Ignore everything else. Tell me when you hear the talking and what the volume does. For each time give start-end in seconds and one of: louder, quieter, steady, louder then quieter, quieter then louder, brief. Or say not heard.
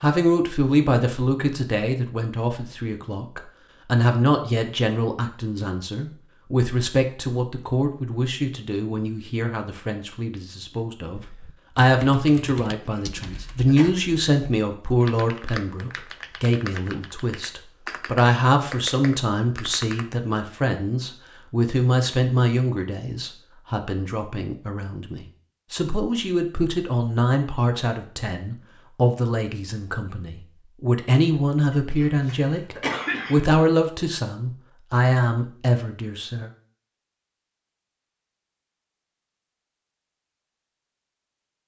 0.0-36.5 steady.